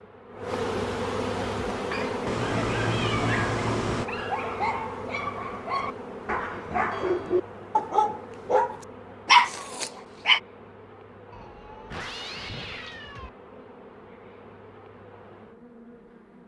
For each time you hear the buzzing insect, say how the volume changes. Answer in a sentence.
You can hear the buzzing insect from 0.0 to 16.4 s, getting quieter.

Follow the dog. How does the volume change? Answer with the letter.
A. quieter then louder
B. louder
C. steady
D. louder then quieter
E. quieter
B.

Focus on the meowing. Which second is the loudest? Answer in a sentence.
The volume of the meowing peaks at 3 seconds.